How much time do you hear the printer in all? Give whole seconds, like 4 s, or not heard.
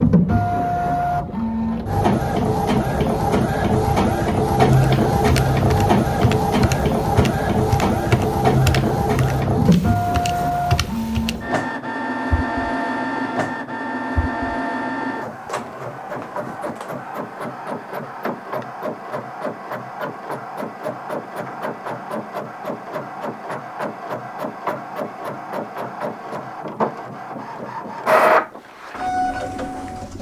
30 s.